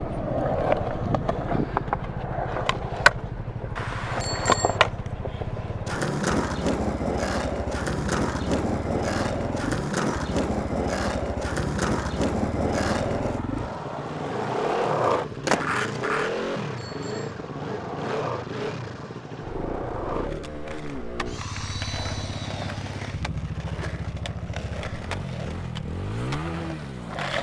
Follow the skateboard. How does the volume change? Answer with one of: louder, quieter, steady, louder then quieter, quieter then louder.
quieter.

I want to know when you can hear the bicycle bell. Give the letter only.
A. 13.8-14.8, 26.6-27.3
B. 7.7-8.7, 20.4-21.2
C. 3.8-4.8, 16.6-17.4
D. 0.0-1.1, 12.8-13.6
C.